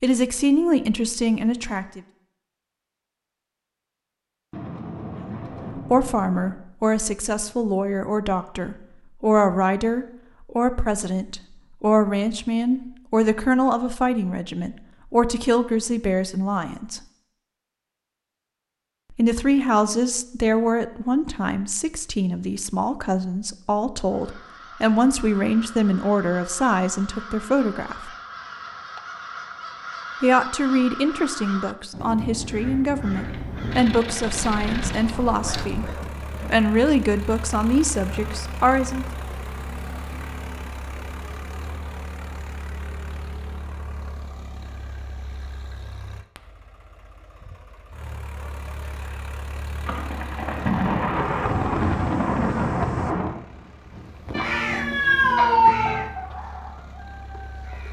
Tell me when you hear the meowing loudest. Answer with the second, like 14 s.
56 s.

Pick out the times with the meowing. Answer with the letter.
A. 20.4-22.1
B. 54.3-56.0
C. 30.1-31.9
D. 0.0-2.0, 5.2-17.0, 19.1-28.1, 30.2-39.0
B.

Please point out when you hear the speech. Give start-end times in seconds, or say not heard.
0.0-2.0, 5.2-17.0, 19.1-28.1, 30.2-39.0.